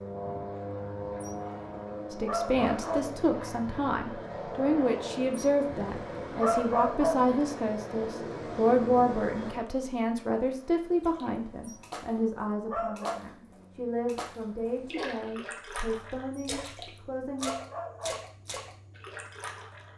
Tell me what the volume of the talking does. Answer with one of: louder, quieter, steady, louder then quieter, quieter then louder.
quieter.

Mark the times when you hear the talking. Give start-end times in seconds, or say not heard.
2.1-17.6.